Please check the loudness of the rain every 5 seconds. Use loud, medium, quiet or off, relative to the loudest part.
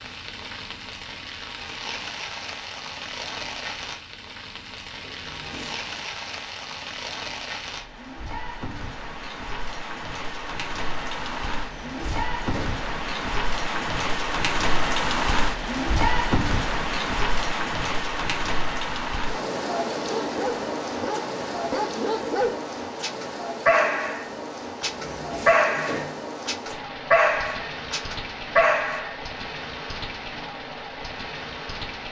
medium, medium, loud, loud, medium, medium, medium.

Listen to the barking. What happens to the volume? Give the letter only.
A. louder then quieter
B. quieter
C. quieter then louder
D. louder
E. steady
D.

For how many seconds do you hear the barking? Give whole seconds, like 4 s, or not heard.
9 s.